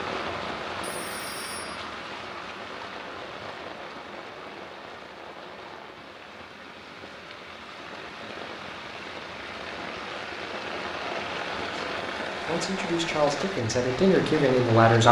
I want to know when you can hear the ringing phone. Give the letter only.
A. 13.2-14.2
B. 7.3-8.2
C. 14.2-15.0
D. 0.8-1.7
D.